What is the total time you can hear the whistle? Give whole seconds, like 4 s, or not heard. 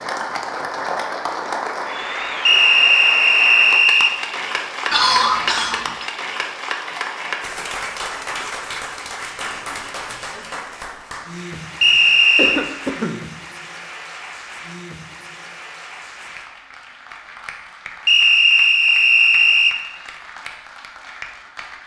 4 s.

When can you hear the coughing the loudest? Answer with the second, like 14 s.
5 s.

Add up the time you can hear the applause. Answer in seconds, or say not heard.
22 s.